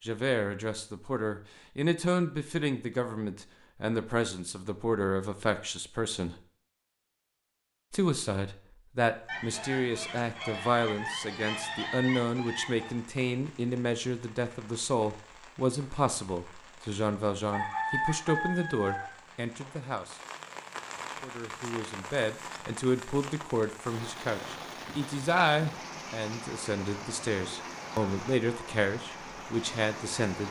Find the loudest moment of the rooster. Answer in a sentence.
The volume of the rooster peaks at 18 seconds.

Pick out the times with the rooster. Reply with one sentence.
You can hear the rooster from 9.2 to 13.0 s and from 17.5 to 19.1 s.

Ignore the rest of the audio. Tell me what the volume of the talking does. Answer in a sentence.
The volume of the talking stays about the same.